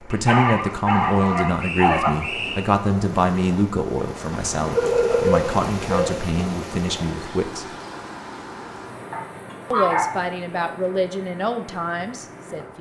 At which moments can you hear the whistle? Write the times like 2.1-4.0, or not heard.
1.6-2.6.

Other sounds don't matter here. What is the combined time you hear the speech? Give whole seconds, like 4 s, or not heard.
11 s.